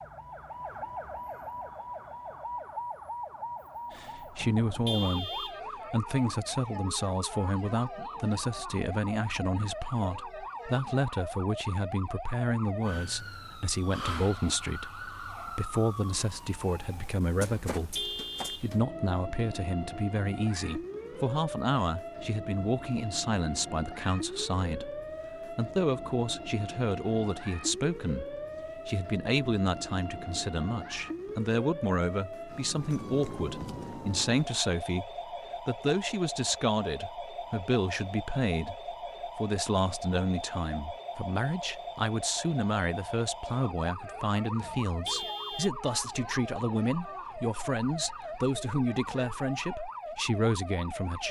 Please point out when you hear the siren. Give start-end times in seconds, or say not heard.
0.0-51.2.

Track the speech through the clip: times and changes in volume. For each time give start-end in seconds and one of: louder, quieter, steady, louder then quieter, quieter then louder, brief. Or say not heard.
3.9-51.2 steady.